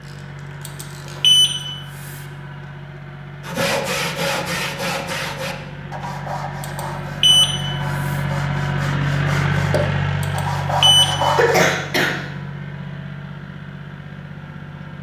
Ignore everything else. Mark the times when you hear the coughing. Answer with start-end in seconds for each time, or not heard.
11.3-12.2.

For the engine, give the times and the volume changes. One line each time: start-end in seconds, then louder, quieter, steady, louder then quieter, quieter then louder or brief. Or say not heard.
0.0-14.9 louder then quieter.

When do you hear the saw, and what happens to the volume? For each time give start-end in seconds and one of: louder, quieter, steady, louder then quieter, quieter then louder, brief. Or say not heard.
3.4-11.7 quieter then louder.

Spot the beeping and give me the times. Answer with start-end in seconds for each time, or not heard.
0.7-2.2, 6.6-8.2, 10.2-11.2.